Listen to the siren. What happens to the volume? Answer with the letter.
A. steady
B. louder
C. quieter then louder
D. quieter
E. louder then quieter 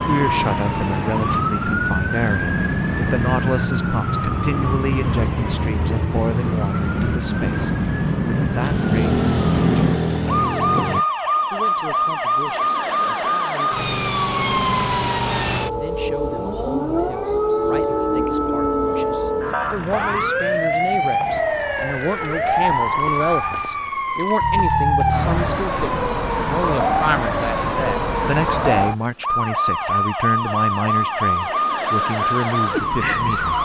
A.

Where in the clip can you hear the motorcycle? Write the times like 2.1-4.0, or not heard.
8.6-11.1.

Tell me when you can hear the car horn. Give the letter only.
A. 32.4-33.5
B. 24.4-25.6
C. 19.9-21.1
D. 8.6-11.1
B.